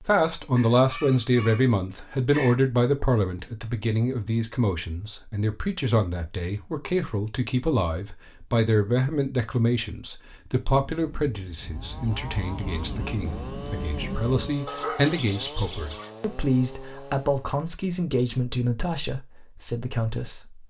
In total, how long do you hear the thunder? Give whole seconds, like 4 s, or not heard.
4 s.